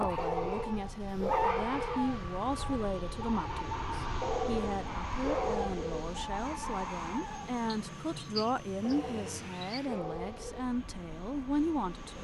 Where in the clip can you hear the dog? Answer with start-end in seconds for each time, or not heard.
0.1-2.2, 4.2-6.2, 8.8-10.7.